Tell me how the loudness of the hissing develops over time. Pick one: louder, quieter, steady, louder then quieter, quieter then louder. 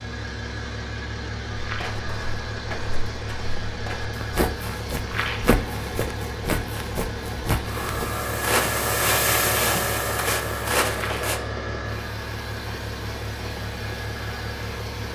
quieter.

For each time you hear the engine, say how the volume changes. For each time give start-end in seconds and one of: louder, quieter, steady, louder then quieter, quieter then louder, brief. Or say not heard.
0.0-15.1 steady.